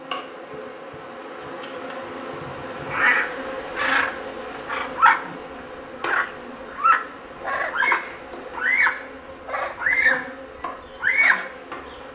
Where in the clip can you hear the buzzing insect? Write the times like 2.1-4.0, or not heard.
0.0-12.1.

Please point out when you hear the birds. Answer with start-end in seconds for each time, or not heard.
2.9-5.2, 6.0-10.3, 11.0-11.5.